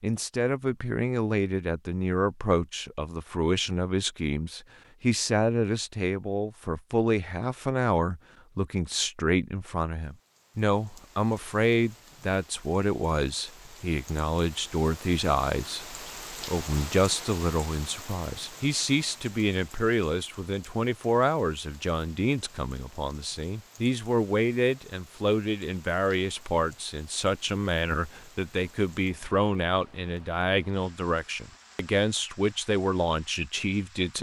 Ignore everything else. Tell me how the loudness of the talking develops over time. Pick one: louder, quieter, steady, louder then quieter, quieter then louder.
steady.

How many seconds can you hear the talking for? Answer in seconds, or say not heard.
34 s.